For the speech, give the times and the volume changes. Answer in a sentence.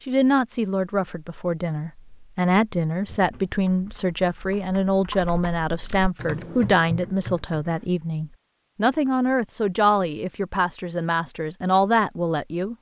You can hear the speech from 0.1 to 12.7 s, at a steady volume.